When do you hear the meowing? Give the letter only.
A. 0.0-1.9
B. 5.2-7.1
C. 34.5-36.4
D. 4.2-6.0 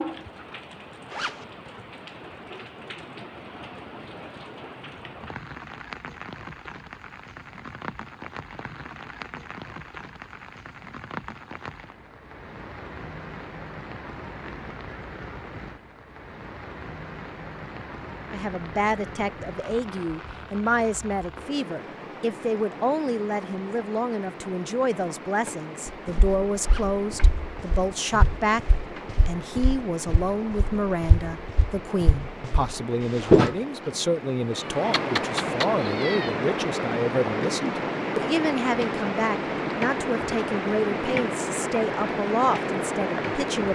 C.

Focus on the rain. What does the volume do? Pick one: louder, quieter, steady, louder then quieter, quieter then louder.
louder.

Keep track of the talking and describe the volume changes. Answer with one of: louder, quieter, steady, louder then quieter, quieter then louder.
steady.